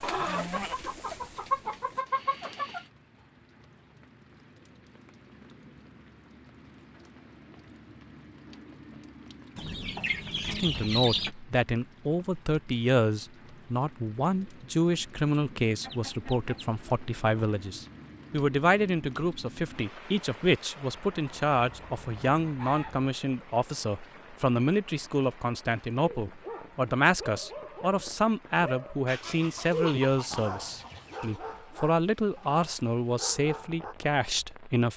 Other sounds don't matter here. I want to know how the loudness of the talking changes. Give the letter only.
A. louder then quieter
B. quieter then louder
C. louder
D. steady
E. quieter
D.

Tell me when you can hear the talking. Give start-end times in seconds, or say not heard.
10.5-34.9.